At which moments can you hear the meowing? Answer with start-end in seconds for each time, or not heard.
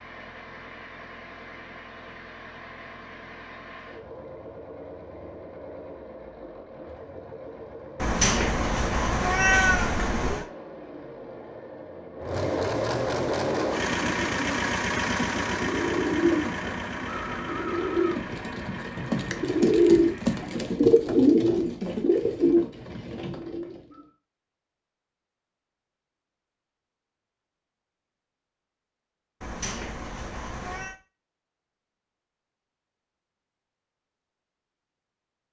8.0-10.4, 29.4-30.9.